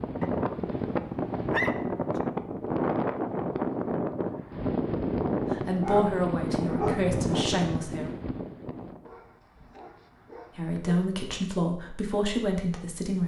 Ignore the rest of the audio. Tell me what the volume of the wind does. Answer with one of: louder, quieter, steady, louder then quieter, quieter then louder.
steady.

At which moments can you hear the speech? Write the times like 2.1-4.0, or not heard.
5.5-8.1, 10.6-13.2.